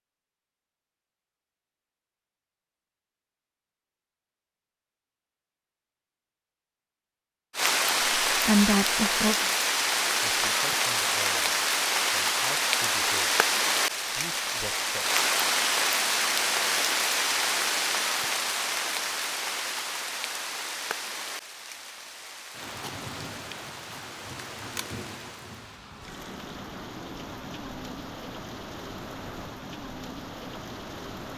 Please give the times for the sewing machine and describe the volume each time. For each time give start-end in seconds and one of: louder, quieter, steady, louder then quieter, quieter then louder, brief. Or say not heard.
not heard.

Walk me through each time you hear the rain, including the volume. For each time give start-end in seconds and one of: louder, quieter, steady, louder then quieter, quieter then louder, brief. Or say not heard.
7.5-31.3 quieter.